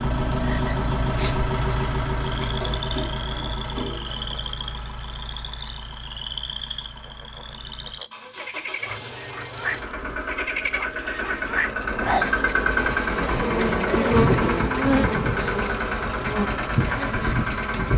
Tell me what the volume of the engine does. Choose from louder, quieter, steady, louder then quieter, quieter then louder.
quieter then louder.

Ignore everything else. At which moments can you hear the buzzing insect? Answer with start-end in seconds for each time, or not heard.
11.6-17.9.